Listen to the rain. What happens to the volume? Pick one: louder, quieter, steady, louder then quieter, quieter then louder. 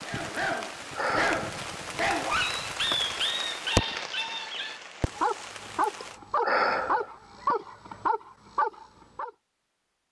louder then quieter.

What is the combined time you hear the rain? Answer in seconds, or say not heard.
6 s.